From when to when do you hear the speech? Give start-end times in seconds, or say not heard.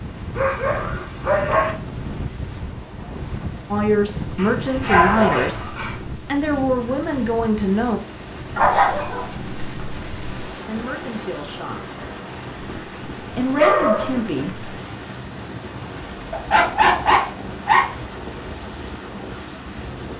3.7-8.0, 10.7-12.0, 13.3-14.7.